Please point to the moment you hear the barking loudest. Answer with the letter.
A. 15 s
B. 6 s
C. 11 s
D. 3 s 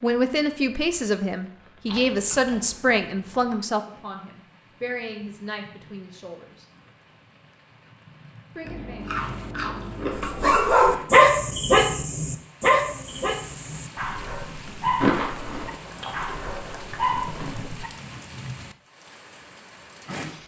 C.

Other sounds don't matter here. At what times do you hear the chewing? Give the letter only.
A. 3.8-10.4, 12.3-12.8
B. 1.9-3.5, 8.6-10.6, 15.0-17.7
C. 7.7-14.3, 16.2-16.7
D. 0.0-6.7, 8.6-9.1
B.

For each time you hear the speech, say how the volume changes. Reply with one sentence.
You can hear the speech from 0.0 to 6.7 s, getting quieter; and briefly from 8.6 to 9.1 s.